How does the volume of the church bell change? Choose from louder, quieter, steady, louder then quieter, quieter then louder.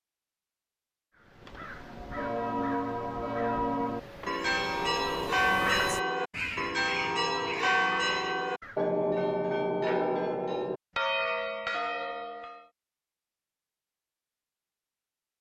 steady.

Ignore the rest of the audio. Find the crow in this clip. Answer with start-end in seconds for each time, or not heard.
1.1-8.9.